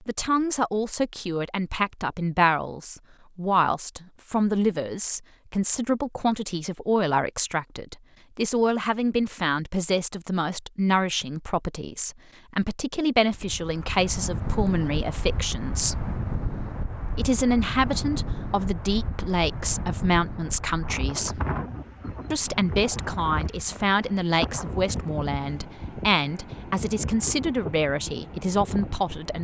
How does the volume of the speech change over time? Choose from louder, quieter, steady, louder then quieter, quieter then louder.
steady.